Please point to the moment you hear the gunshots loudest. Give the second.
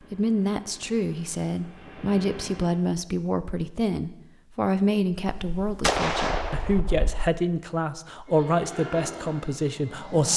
6 s.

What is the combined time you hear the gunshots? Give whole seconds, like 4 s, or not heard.
2 s.